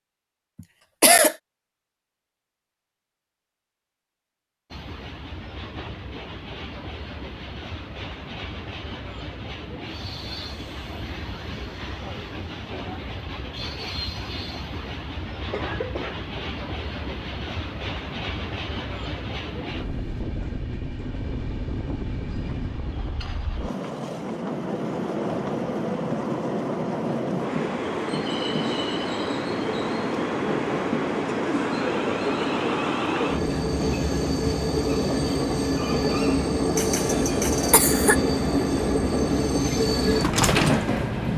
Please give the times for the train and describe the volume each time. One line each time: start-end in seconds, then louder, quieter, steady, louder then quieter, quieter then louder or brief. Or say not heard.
4.7-41.3 louder.